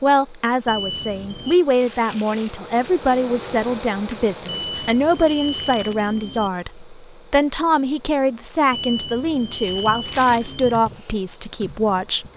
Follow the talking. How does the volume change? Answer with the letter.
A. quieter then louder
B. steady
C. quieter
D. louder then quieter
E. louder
B.